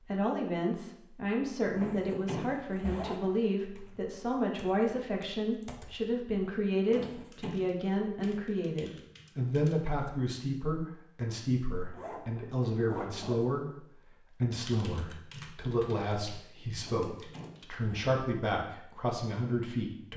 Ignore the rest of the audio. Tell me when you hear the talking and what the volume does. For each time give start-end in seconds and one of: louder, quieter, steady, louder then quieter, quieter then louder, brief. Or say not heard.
0.0-20.1 steady.